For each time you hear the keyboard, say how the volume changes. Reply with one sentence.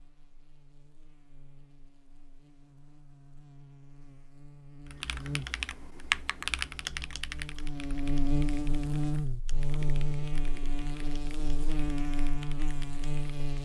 The keyboard can be heard from 4.9 to 13.4 s, getting quieter.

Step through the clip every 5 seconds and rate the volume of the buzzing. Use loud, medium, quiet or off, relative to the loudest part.
quiet, loud, loud.